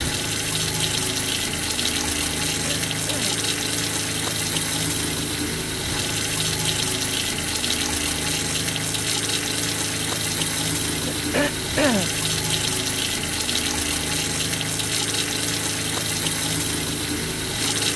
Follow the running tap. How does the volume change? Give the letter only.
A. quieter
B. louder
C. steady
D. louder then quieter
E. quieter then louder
C.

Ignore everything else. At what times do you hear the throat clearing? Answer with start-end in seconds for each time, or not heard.
2.6-3.5, 11.1-12.1.